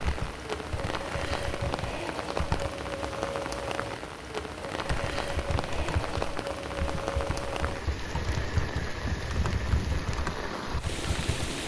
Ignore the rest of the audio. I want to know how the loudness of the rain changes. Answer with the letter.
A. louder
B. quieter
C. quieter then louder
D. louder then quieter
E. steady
E.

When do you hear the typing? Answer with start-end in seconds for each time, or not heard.
0.0-2.7, 4.8-11.6.